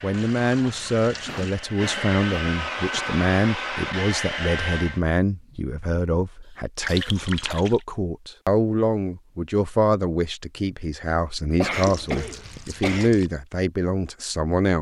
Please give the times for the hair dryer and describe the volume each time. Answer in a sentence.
The hair dryer can be heard from 0.0 to 5.0 s, getting louder.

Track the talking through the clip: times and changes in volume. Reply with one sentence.
You can hear the talking from 0.0 to 14.7 s, at a steady volume.